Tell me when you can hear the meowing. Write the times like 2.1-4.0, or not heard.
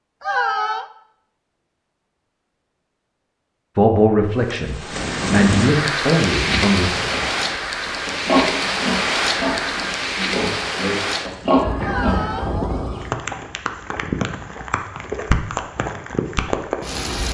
0.2-0.8, 11.8-13.1.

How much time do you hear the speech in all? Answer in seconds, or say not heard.
3 s.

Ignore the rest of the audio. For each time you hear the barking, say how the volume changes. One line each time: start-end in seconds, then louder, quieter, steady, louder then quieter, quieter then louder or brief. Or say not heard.
not heard.